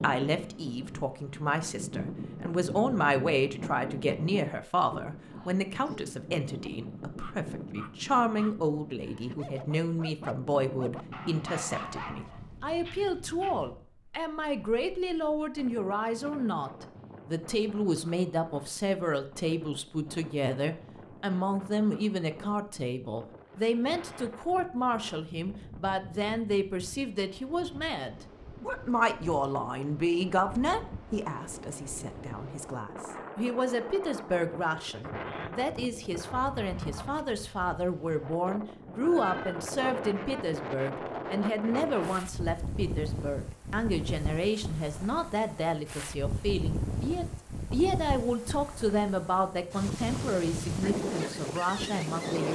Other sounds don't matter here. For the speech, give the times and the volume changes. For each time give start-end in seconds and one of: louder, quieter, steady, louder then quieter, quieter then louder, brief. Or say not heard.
0.0-52.5 steady.